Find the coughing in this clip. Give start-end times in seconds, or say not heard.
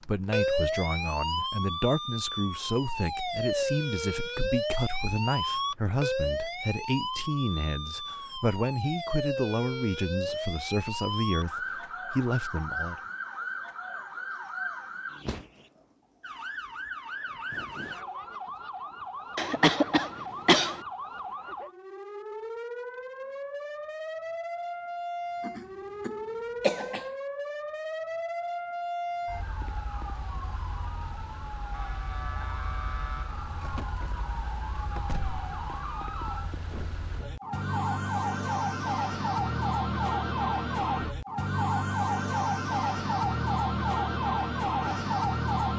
19.4-20.8, 25.4-27.1.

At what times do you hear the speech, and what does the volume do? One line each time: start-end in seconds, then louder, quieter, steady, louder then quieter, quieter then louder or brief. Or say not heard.
0.0-12.9 steady.